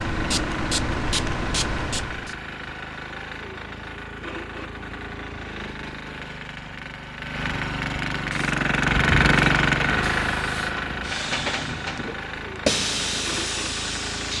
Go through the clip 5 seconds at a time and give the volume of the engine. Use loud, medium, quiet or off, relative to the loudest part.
medium, loud, medium.